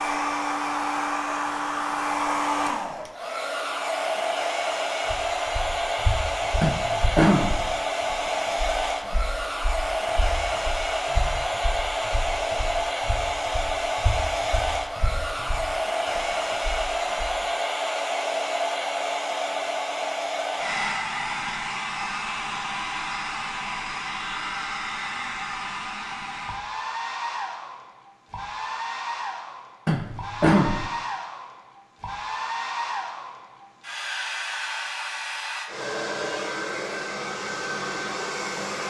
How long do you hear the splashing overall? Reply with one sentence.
You can't hear the splashing here.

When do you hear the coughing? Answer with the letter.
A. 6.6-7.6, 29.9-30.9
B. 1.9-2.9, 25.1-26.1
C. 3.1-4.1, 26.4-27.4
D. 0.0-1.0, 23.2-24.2
A.